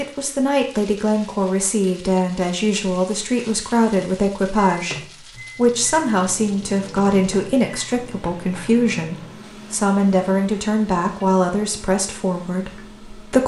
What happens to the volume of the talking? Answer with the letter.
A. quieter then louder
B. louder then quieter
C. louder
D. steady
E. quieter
D.